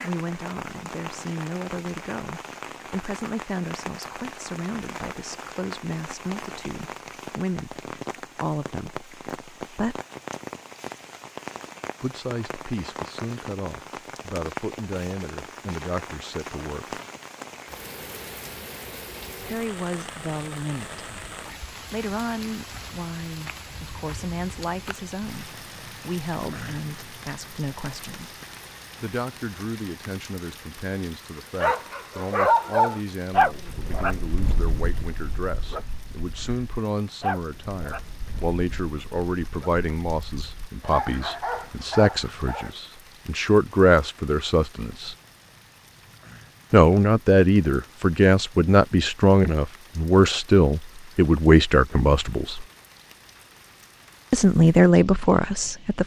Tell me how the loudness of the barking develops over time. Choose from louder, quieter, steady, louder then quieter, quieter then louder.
quieter then louder.